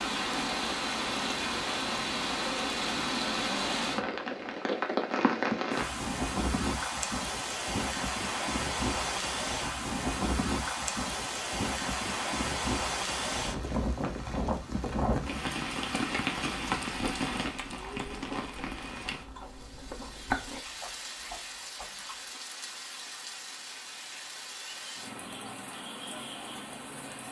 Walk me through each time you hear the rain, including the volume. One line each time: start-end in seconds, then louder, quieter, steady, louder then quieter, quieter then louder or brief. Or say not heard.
0.0-27.2 quieter.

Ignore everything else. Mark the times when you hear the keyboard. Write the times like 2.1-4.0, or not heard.
not heard.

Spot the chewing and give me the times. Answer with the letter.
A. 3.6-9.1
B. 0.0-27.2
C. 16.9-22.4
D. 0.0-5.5
C.